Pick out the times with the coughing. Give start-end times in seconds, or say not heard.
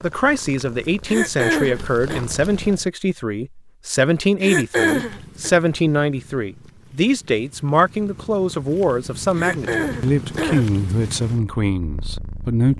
1.1-2.2, 4.4-5.5, 9.3-10.8.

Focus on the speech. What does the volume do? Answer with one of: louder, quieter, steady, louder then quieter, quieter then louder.
steady.